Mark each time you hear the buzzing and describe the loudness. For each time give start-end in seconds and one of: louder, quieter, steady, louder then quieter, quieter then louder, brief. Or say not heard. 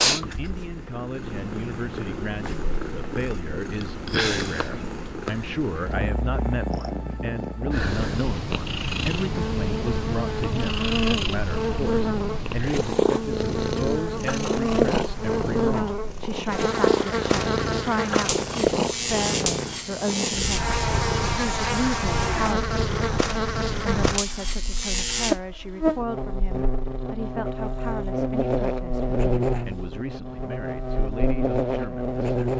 9.2-32.5 steady.